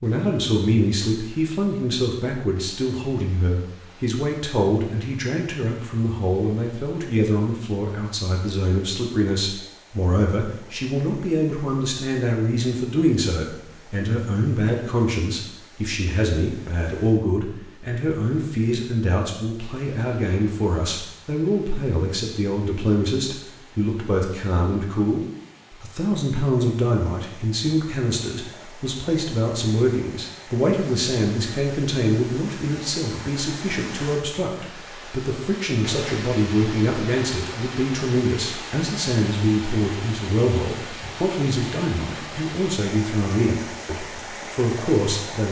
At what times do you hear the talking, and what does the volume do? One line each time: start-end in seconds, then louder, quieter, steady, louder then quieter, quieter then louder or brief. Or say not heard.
0.0-45.4 steady.